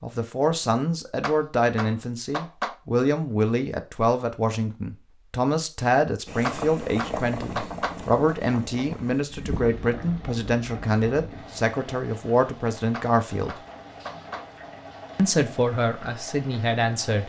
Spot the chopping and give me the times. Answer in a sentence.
You can hear the chopping from 1.2 to 2.8 s, from 6.5 to 8.0 s and from 12.9 to 14.4 s.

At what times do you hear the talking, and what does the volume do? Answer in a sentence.
The talking can be heard from 0.0 to 13.6 s, at a steady volume; and briefly from 15.2 to 17.2 s.